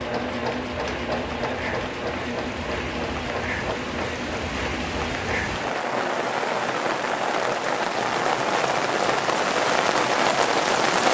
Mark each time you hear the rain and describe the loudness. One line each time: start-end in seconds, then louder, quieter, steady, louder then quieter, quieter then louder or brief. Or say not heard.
0.0-11.0 louder.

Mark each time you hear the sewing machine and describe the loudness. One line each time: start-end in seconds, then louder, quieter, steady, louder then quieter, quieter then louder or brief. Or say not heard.
0.0-10.8 quieter.